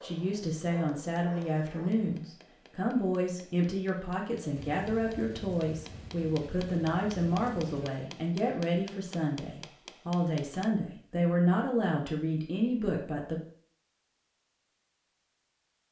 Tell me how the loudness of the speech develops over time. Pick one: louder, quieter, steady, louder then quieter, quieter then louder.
steady.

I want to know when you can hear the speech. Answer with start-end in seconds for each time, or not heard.
0.0-13.4.